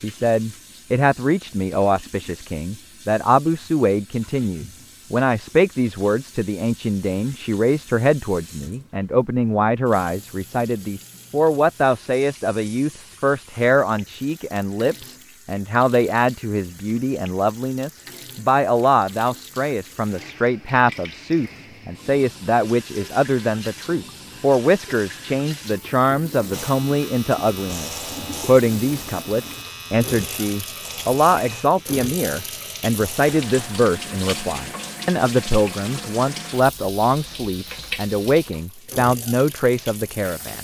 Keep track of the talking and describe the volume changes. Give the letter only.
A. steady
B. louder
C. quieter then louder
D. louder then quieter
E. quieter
A.